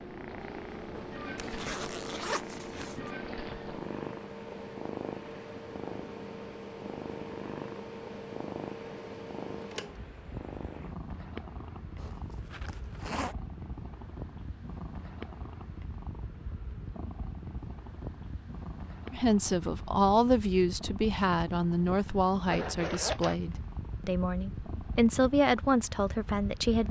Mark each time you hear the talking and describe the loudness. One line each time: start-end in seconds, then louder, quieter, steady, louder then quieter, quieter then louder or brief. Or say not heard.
19.1-26.8 quieter then louder.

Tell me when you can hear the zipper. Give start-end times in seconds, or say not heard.
1.4-3.1, 11.9-13.3, 22.5-23.4.